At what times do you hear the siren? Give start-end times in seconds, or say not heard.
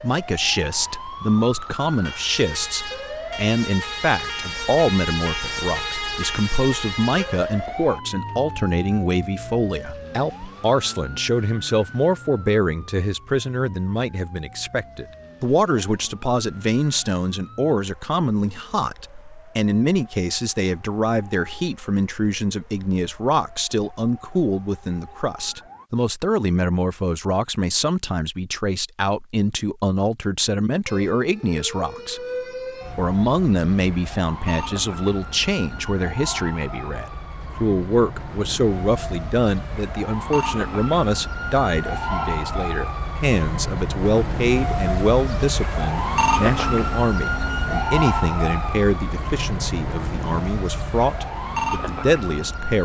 0.0-25.9, 30.9-52.8.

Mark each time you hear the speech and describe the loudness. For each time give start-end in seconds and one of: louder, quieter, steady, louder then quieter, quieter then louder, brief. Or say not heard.
0.0-32.2 steady
33.0-52.8 steady.